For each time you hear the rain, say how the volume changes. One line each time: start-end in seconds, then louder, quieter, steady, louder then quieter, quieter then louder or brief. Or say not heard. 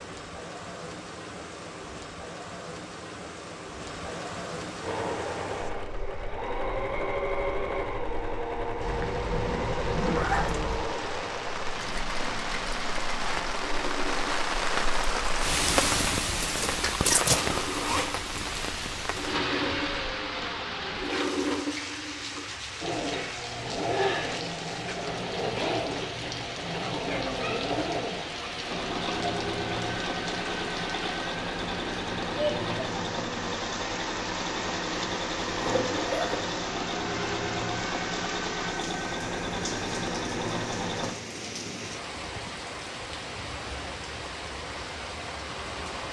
0.0-46.0 louder then quieter.